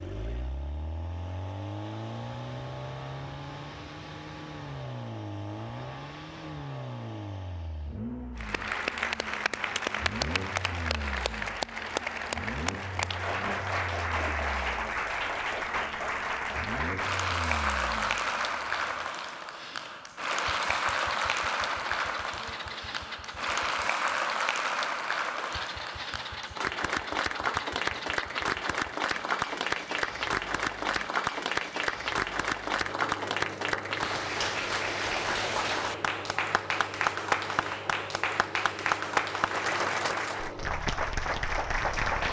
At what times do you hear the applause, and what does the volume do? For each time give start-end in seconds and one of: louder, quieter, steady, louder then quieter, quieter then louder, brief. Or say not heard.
8.3-42.2 steady.